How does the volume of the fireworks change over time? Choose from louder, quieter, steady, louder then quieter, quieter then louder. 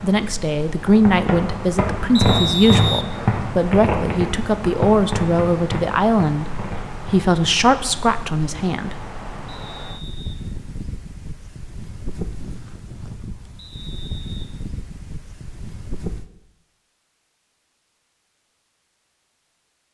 quieter.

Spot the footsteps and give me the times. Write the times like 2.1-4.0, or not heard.
not heard.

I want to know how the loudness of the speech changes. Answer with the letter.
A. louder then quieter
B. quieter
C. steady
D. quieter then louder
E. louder
C.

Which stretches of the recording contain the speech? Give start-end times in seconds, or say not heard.
0.0-8.9.